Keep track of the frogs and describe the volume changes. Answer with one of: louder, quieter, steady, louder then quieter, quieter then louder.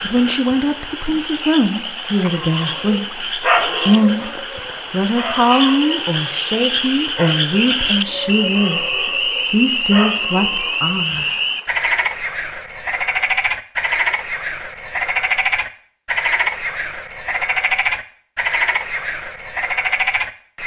louder.